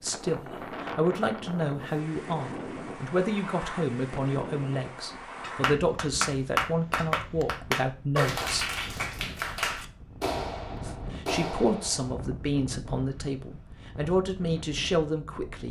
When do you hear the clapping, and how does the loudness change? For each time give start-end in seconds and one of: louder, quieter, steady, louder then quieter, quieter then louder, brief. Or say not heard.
5.4-12.2 quieter.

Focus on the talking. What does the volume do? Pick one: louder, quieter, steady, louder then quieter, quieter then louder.
steady.